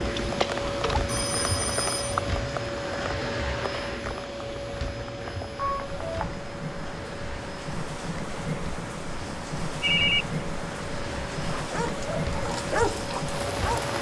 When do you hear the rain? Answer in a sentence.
You can hear the rain from 0.0 to 13.9 s.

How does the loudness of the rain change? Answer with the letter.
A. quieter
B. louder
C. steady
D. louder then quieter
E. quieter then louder
E.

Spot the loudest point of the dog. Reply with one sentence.
The volume of the dog peaks at 13 seconds.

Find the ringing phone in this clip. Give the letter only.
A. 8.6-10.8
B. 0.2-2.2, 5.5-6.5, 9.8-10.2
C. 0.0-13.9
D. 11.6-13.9
B.